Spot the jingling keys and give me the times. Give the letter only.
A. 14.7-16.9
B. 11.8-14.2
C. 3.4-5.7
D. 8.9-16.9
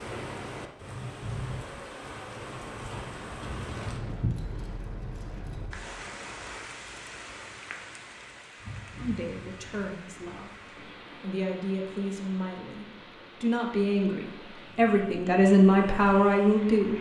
C.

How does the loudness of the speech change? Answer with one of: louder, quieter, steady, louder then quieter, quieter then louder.
louder.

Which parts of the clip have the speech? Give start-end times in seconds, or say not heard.
8.9-16.9.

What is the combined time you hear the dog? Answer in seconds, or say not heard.
not heard.